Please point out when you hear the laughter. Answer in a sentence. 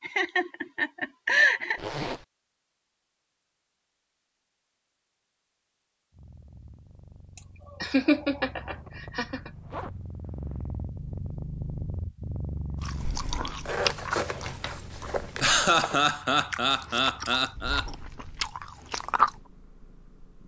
You can hear the laughter from 0.0 to 1.8 s, from 7.3 to 9.5 s and from 15.4 to 17.9 s.